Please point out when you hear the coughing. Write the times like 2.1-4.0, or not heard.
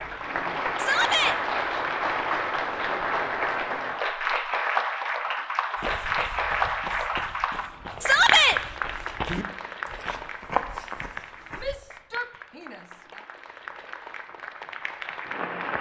not heard.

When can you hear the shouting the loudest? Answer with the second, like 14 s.
8 s.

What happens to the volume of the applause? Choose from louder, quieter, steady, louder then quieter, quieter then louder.
quieter.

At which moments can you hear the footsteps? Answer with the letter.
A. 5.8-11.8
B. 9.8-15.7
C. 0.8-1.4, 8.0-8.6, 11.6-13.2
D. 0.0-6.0
A.